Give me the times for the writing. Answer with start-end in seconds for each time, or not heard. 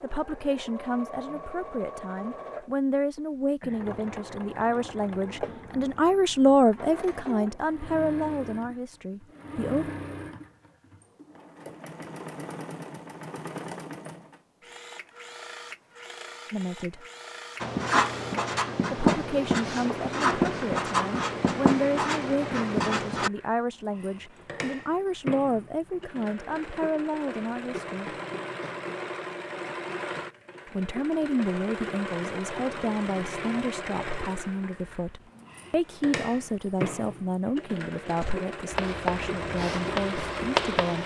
17.6-23.3, 38.2-41.0.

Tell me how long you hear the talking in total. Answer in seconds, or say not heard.
30 s.